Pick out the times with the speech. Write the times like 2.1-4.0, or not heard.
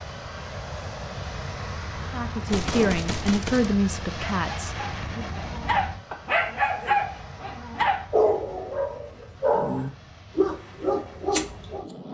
2.1-5.2.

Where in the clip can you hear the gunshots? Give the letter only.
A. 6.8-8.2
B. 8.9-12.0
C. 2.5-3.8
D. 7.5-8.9
C.